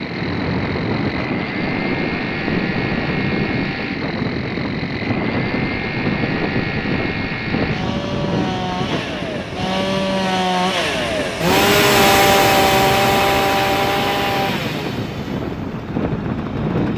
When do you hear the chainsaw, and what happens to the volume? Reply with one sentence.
You can hear the chainsaw from 0.0 to 16.9 s, getting louder then quieter.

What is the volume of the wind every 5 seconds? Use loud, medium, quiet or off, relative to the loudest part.
loud, loud, medium, loud.